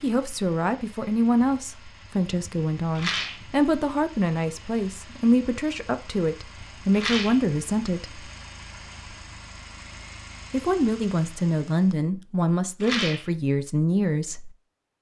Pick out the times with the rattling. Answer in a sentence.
You can hear the rattling from 3.0 to 3.5 s, from 6.9 to 7.4 s and from 12.8 to 13.3 s.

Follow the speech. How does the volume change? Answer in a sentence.
The volume of the speech stays about the same.